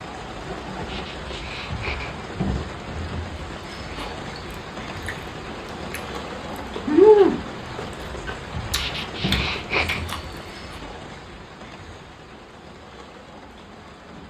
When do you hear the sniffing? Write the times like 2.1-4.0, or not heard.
0.8-2.1, 8.7-10.1.